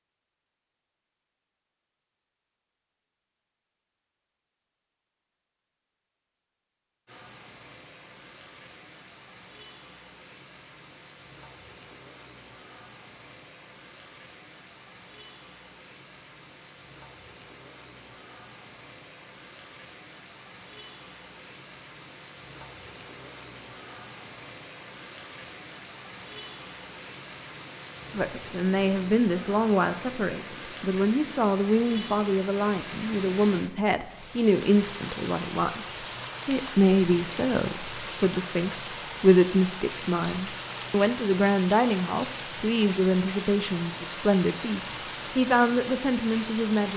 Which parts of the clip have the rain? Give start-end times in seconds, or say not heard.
7.0-46.9.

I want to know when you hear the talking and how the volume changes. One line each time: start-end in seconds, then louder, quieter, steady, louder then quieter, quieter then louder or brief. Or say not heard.
28.1-46.9 steady.